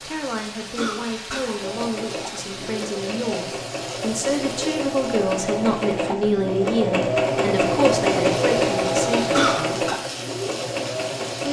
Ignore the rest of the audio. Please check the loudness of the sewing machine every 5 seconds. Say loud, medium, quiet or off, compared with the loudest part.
medium, loud, medium.